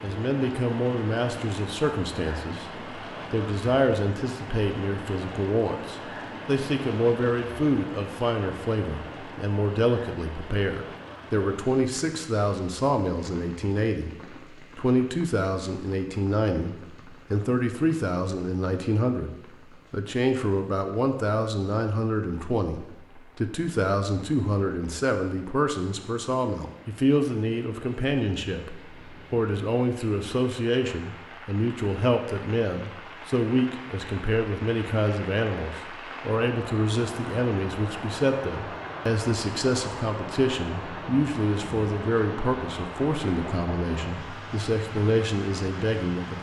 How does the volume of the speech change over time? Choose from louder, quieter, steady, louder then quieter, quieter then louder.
steady.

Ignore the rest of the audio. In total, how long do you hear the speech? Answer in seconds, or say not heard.
46 s.